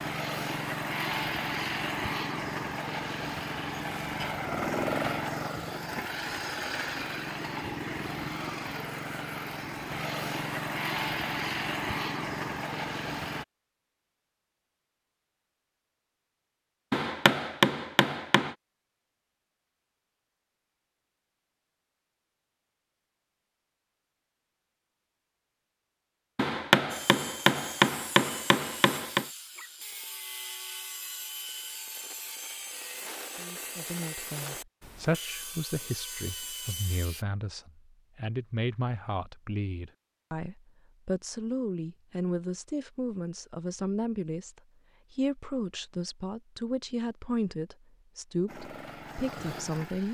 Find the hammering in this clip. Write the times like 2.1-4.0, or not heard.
16.9-18.6, 26.4-29.2.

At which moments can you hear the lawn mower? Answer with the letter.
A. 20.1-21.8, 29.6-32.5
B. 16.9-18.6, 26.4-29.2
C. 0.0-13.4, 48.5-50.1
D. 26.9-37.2
C.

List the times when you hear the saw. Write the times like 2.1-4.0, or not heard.
26.9-37.2.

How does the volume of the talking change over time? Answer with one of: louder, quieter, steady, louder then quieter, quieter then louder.
steady.